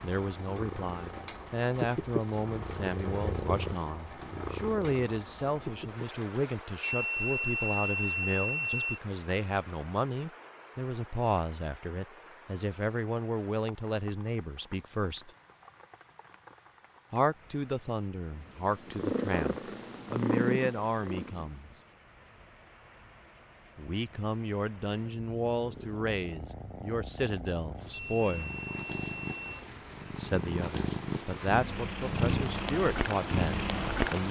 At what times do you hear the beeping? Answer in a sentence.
The beeping can be heard from 6.8 to 9.0 s and from 27.9 to 29.6 s.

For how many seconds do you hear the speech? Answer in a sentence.
The speech can be heard for 29 seconds in total.